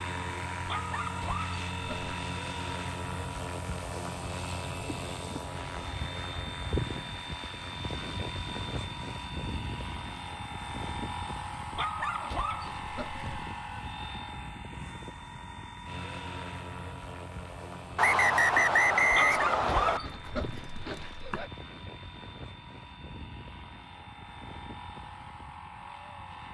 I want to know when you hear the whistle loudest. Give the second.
19 s.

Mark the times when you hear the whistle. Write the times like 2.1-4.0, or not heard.
17.9-20.0.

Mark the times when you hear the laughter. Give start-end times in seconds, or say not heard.
not heard.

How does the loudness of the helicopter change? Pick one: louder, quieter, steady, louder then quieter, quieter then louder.
quieter.